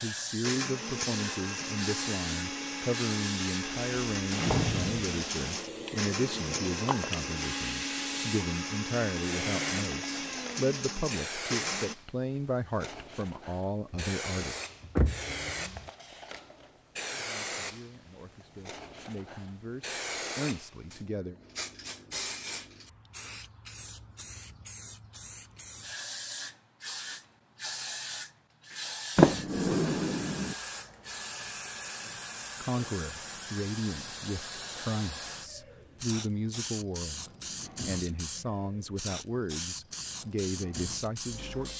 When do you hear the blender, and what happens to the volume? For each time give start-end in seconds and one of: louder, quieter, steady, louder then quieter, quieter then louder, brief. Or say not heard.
0.4-11.9 steady.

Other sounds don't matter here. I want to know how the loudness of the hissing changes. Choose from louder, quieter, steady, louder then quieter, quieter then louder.
steady.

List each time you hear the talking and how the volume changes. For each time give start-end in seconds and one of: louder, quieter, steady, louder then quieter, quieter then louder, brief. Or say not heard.
0.0-14.6 steady
17.1-21.4 louder
32.6-41.7 steady.